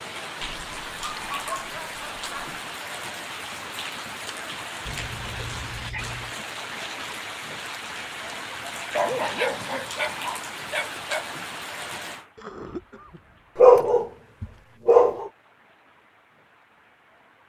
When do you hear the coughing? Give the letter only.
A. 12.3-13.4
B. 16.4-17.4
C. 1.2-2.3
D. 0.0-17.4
A.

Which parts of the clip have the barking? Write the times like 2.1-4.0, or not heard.
0.6-2.6, 4.8-6.3, 8.9-11.2, 13.6-15.3.